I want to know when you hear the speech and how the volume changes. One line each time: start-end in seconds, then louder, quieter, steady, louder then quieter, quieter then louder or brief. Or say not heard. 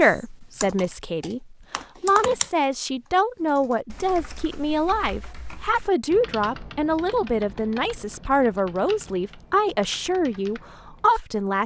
0.0-11.6 steady.